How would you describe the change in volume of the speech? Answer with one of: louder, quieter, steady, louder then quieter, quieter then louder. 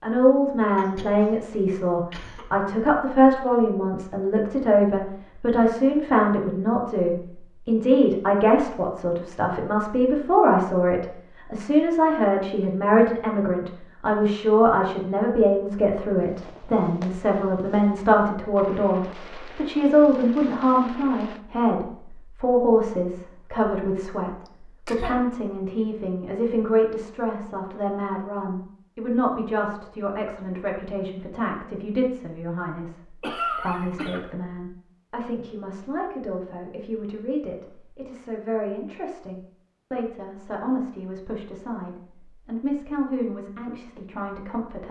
quieter.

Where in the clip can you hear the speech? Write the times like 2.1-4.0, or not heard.
0.0-44.8.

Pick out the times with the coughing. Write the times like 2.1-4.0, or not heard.
0.8-2.6, 24.4-25.2, 33.2-34.2.